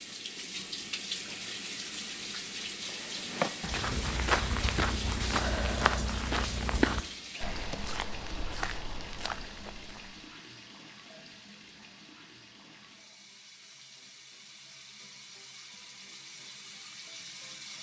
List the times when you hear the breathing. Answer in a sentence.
The breathing can't be heard in this clip.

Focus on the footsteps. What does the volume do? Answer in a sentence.
The volume of the footsteps goes down.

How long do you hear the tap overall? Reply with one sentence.
You can hear the tap for 18 seconds altogether.